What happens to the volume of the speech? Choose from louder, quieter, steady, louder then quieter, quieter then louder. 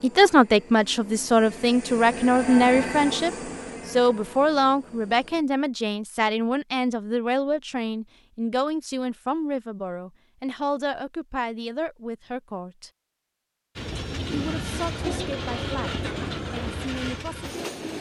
quieter.